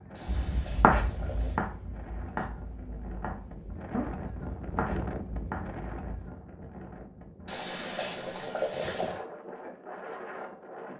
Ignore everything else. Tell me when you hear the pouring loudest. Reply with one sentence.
The loudest moment of the pouring is at 9 seconds.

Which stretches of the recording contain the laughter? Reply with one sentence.
The laughter can't be heard in this clip.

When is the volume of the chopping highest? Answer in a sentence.
The loudest moment of the chopping is at 1 second.